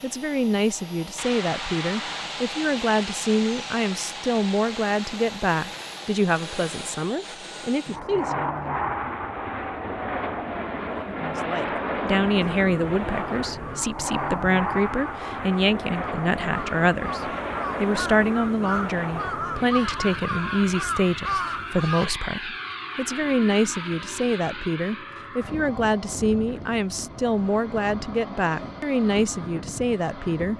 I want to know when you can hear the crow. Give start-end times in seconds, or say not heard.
12.4-22.1.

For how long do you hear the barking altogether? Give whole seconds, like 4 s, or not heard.
not heard.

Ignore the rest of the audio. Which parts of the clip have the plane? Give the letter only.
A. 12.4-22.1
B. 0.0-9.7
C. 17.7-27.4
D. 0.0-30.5
D.